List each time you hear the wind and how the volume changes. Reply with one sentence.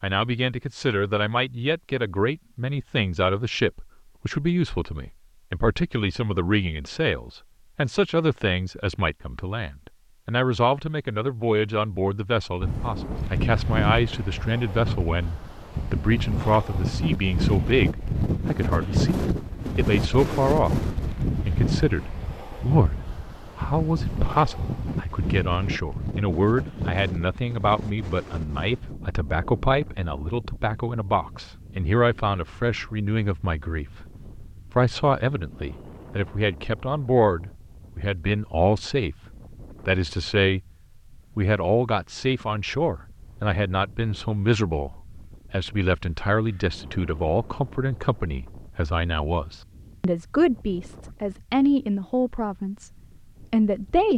The wind can be heard from 12.6 to 54.1 s, getting quieter.